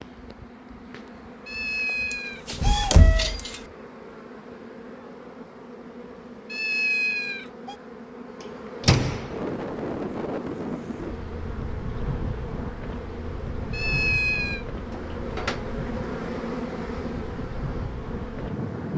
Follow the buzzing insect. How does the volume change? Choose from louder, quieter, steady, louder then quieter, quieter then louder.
louder.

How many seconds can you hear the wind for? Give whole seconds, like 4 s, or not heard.
10 s.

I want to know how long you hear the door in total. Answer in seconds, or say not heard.
3 s.